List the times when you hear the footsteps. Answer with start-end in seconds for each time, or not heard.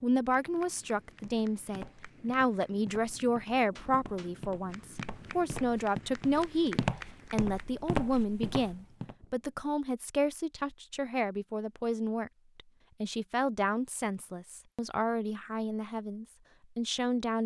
1.2-9.2.